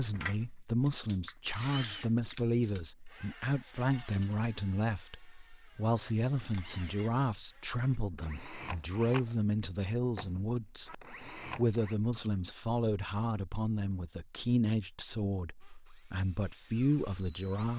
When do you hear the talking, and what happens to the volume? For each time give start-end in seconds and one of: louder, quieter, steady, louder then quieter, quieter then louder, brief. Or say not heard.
0.0-17.7 steady.